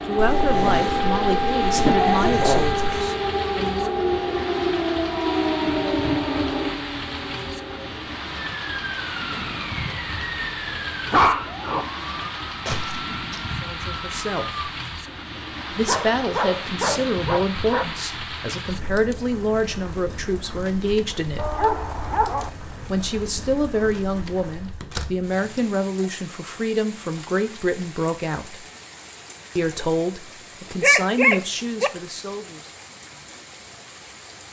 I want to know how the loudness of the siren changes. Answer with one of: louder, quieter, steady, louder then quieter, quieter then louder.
quieter.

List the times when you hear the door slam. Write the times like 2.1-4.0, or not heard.
24.8-25.3.